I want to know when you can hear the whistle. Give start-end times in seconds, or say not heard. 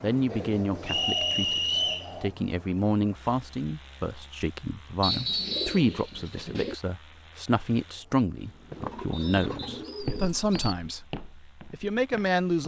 0.8-2.1, 5.0-5.8, 9.1-9.8.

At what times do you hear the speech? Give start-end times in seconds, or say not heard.
0.0-12.6.